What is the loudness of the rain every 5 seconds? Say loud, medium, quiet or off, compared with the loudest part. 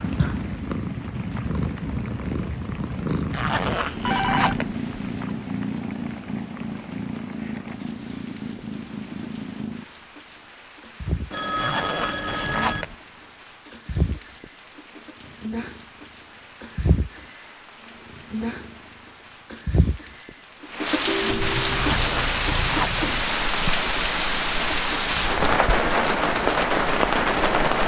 quiet, quiet, quiet, quiet, loud, loud.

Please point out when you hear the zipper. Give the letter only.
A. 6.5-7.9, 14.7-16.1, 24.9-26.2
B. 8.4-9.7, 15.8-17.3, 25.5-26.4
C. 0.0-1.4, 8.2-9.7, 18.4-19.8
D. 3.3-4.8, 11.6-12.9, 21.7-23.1
D.